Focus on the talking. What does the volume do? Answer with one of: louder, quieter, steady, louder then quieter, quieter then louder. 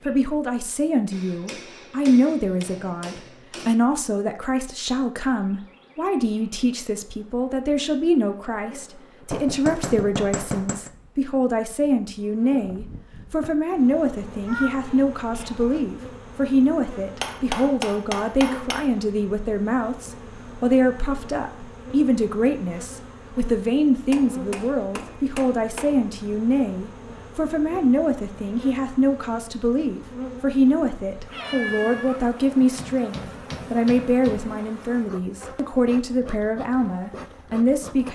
steady.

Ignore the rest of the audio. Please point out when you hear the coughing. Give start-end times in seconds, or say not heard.
not heard.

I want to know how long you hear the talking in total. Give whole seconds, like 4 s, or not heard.
38 s.